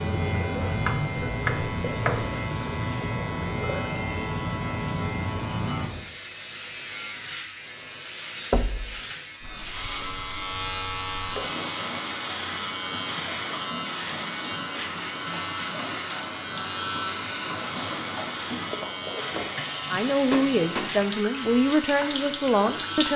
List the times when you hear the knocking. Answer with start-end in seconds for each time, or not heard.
0.8-2.2, 8.5-8.9, 20.3-20.9.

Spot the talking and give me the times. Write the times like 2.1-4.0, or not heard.
19.9-23.1.